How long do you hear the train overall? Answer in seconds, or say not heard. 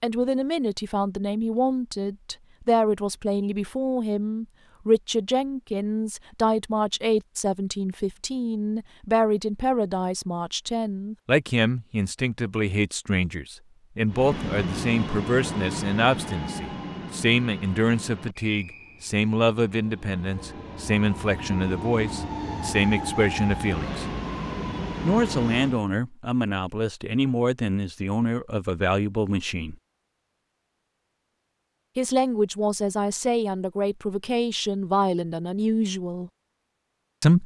12 s.